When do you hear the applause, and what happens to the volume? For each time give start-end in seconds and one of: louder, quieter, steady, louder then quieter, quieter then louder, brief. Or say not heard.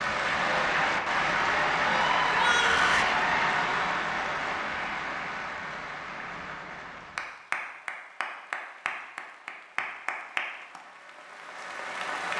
0.0-12.3 quieter.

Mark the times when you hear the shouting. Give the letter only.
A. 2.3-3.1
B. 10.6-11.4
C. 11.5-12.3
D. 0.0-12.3
A.